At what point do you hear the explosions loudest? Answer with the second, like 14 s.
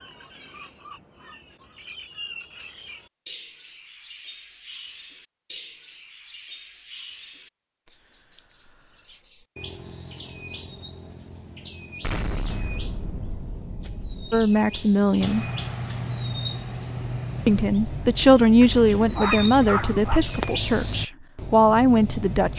12 s.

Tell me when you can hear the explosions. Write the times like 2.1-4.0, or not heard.
12.0-14.4.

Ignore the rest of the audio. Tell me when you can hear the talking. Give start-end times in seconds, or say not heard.
14.3-15.4, 17.4-22.5.